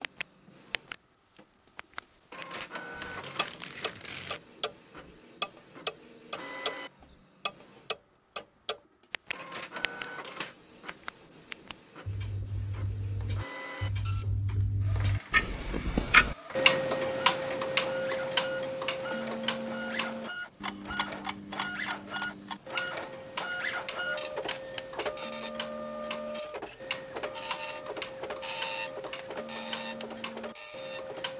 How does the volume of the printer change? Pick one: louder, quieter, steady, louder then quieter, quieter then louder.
louder.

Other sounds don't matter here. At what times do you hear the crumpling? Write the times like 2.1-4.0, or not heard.
3.0-4.4.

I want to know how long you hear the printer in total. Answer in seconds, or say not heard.
31 s.